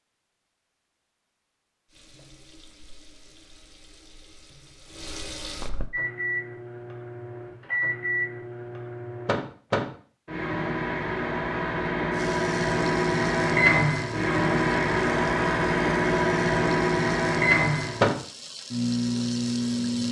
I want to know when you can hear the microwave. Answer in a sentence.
You can hear the microwave from 5.9 to 20.0 s.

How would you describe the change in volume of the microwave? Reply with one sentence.
The loudness of the microwave goes up.